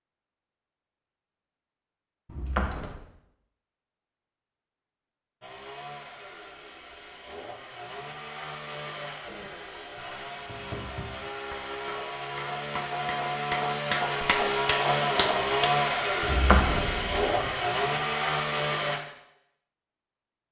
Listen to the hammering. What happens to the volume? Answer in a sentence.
The volume of the hammering goes up.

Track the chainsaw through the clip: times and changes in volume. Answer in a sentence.
The chainsaw can be heard from 5.4 to 19.0 s, getting louder.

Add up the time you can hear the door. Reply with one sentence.
The door can be heard for 2 seconds in total.